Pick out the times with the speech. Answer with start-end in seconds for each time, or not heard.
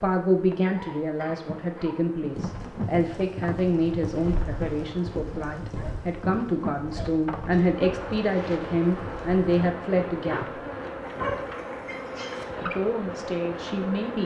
0.0-10.6, 12.7-14.2.